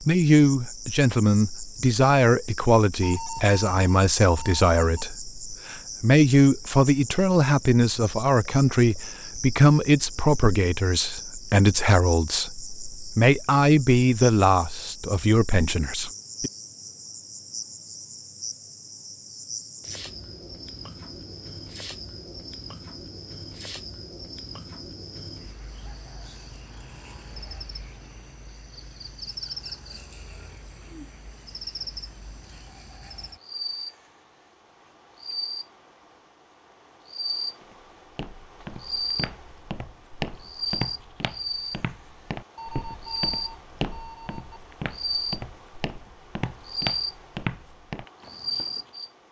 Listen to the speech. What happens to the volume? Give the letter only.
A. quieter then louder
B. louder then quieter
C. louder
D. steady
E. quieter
D.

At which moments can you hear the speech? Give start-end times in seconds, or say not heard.
0.0-16.5.